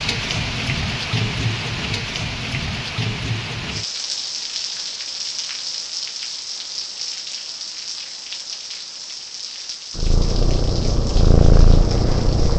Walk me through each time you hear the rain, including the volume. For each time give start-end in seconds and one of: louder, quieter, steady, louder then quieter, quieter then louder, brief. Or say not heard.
0.0-12.5 quieter.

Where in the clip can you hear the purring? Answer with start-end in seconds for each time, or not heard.
9.9-12.5.